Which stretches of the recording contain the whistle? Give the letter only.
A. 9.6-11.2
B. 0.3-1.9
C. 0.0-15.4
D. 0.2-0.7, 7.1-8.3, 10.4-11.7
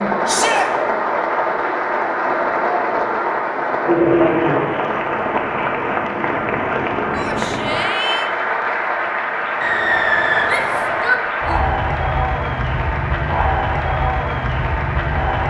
A.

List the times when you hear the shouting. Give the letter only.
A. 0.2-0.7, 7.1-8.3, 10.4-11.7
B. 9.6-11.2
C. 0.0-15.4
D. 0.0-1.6
A.